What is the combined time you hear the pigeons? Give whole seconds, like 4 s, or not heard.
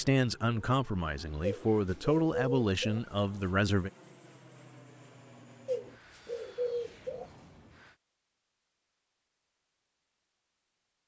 3 s.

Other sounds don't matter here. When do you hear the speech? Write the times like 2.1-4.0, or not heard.
0.0-3.9.